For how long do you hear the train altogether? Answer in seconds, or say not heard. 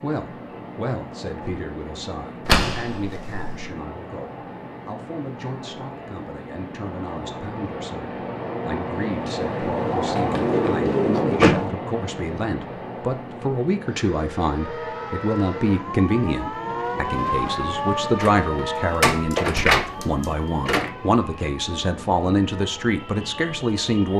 24 s.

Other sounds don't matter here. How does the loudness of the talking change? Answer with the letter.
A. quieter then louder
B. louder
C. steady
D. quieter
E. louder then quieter
B.